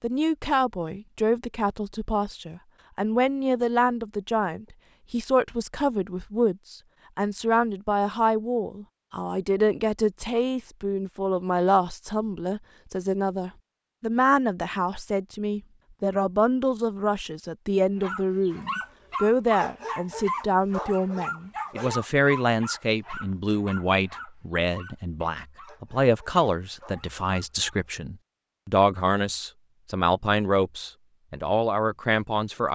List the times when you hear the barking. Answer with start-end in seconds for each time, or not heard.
18.0-27.8.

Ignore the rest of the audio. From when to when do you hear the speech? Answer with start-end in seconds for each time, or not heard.
0.0-32.7.